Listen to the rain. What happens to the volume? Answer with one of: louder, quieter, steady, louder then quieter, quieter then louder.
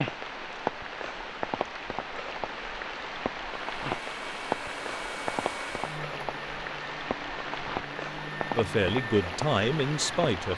steady.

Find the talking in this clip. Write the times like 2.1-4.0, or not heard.
8.5-10.5.